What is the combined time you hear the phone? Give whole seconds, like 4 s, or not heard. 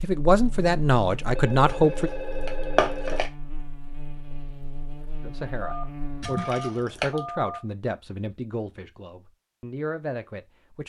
4 s.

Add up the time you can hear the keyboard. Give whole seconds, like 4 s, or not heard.
not heard.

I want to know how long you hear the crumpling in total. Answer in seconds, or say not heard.
3 s.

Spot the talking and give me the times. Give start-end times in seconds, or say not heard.
0.0-2.1, 5.2-10.8.